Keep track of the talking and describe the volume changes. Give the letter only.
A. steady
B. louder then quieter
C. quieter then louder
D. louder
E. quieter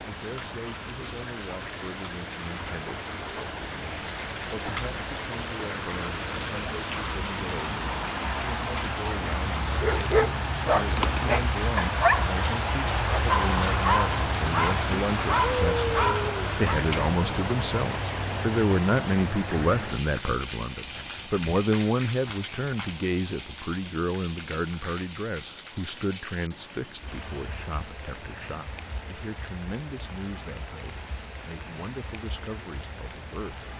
B.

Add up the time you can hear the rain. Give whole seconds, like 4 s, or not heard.
34 s.